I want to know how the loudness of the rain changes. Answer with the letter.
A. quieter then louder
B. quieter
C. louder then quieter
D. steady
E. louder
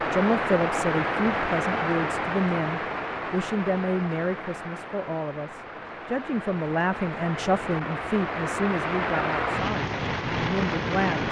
A.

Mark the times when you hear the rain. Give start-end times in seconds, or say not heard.
0.0-11.2.